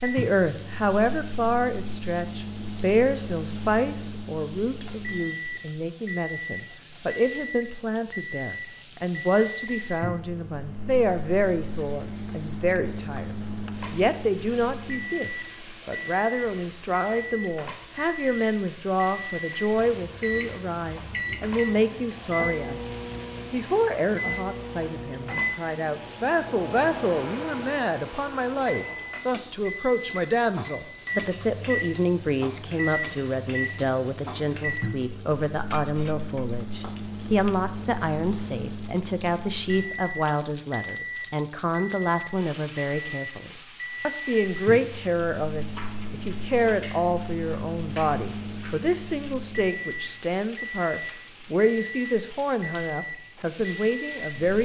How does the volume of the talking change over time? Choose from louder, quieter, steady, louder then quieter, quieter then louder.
steady.